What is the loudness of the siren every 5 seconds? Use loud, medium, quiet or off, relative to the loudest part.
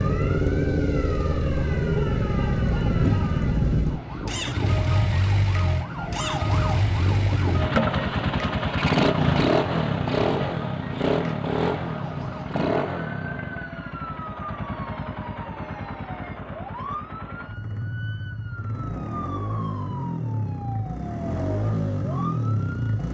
medium, loud, medium, medium, medium.